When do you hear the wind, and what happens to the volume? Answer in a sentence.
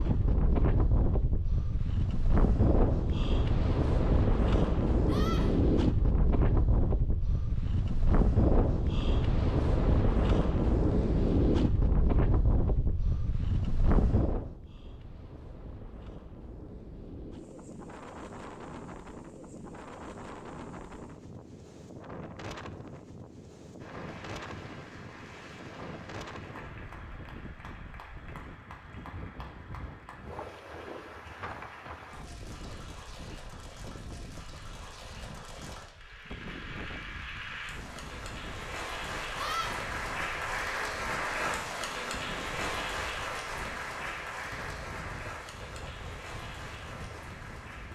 You can hear the wind from 0.0 to 47.9 s, getting quieter.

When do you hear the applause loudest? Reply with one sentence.
The loudest moment of the applause is at 41 seconds.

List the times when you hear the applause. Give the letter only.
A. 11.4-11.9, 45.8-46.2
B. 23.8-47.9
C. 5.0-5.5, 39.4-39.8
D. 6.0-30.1
B.